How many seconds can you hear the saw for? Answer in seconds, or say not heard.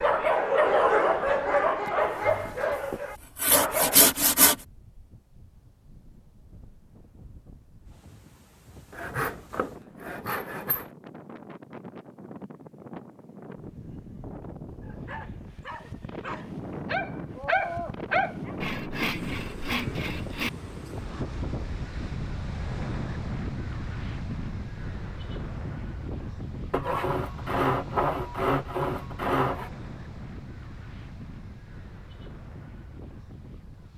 9 s.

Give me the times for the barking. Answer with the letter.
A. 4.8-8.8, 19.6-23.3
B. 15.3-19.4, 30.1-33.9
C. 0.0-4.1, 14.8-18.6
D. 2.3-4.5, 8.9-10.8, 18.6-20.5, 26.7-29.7
C.